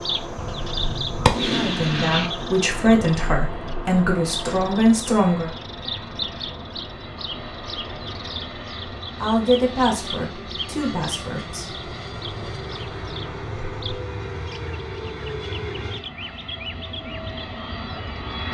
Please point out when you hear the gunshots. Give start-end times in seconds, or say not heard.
0.3-2.3.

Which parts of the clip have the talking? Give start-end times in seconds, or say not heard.
1.6-5.5, 9.2-11.7.